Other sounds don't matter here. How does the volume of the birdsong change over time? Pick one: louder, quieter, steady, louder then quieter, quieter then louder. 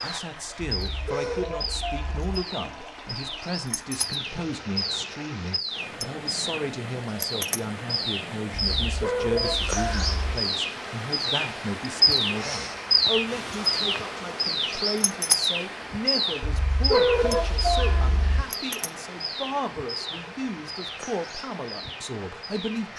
louder then quieter.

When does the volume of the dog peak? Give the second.
17 s.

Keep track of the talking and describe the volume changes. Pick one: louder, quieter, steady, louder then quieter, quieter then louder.
steady.